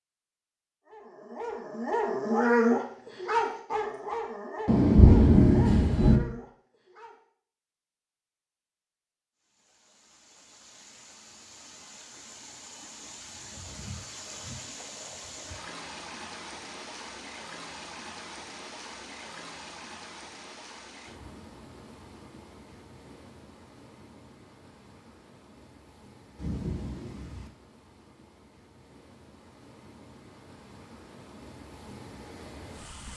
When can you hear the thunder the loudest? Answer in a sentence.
The loudest moment of the thunder is at 5 seconds.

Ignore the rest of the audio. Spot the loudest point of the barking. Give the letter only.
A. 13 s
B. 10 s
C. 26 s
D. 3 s
D.